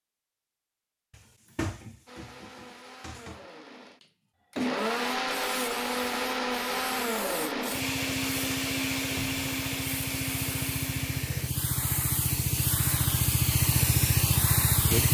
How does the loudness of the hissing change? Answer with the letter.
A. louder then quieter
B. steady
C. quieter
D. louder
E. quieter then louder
D.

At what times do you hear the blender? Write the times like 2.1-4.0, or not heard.
2.0-11.5.